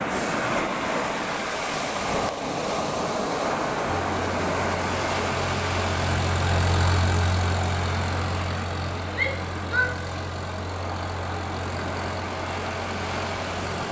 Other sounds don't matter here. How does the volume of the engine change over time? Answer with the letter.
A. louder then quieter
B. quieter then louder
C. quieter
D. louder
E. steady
C.